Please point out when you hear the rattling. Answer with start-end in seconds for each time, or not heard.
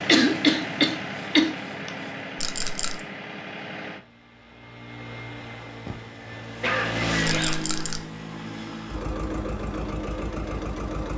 2.4-3.0, 7.2-8.0.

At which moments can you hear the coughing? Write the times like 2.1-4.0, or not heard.
0.1-1.9, 5.8-7.6.